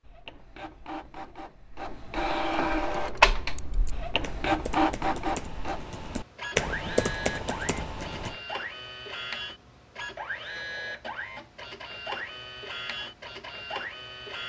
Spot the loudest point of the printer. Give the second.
3 s.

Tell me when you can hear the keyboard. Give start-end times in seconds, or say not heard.
3.0-8.3.